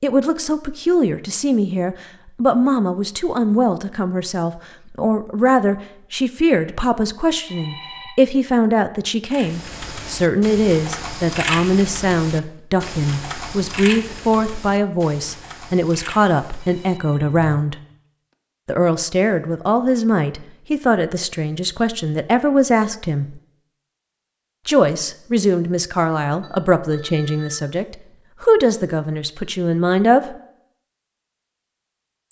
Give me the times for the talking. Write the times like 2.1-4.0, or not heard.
0.0-17.8, 18.6-23.4, 24.6-30.4.